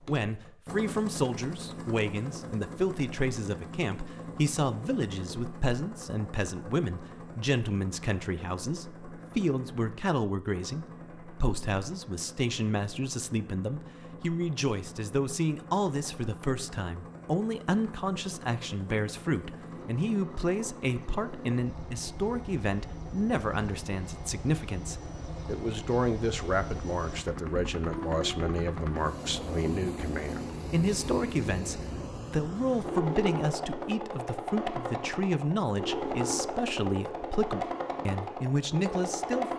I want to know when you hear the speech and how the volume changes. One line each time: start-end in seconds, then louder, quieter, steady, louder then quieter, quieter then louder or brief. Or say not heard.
0.1-39.5 steady.